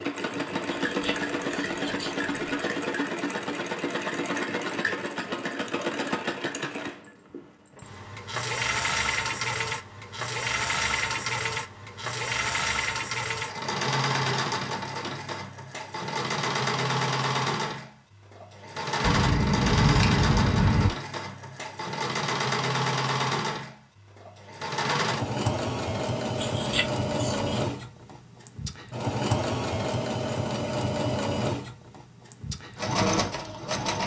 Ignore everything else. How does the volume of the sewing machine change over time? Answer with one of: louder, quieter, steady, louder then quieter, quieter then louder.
steady.